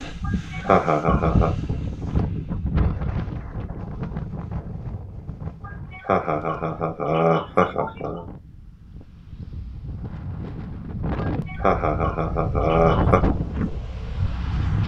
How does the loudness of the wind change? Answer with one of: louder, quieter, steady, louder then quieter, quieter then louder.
quieter then louder.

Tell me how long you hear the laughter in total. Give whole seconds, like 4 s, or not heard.
6 s.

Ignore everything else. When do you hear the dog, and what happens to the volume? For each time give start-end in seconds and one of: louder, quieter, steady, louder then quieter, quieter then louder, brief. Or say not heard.
not heard.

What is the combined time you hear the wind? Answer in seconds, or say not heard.
15 s.